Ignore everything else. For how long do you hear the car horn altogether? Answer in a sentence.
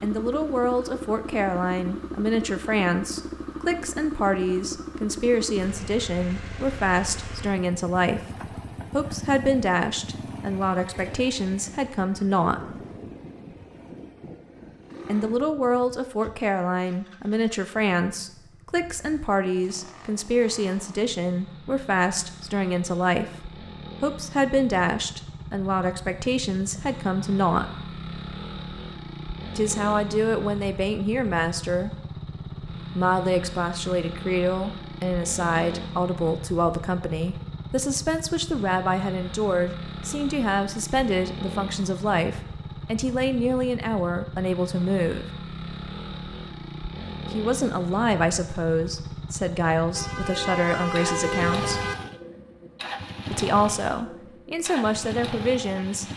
The car horn can be heard for 2 seconds in total.